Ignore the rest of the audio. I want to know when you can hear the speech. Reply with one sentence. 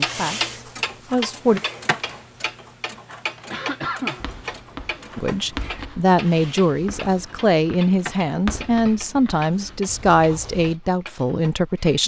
The speech can be heard from 0.0 to 1.6 s and from 5.2 to 12.0 s.